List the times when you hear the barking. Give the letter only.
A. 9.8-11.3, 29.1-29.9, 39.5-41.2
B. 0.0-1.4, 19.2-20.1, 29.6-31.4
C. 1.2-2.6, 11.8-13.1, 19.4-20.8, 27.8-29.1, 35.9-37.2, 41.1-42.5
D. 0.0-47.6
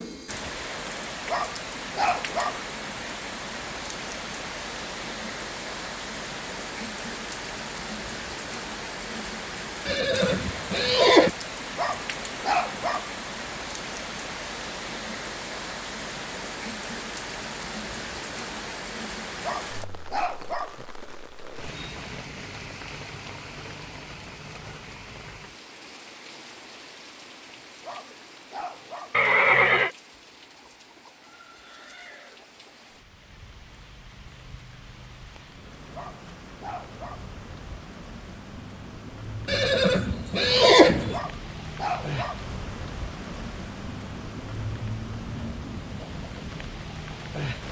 C.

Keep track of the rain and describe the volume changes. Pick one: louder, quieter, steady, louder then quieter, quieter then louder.
quieter then louder.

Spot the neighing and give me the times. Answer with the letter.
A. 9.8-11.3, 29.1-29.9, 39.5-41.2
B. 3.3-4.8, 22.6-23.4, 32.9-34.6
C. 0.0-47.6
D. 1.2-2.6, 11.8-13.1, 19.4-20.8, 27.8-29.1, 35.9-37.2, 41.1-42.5
A.